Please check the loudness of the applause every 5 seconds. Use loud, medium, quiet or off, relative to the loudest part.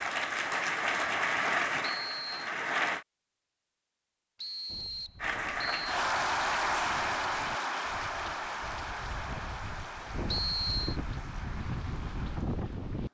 loud, loud, quiet.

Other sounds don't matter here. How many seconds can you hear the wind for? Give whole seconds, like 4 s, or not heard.
8 s.